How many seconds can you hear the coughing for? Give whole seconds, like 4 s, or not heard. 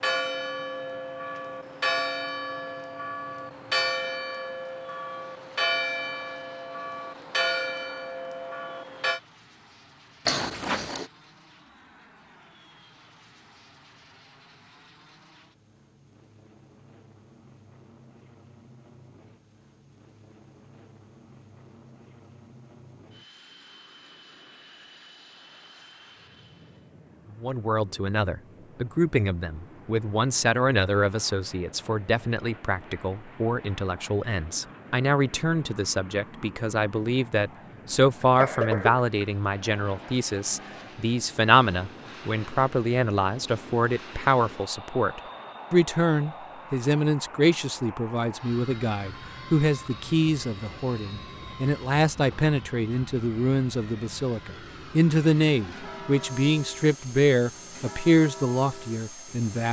2 s.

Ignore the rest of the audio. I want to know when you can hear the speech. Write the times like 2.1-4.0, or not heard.
27.3-59.6.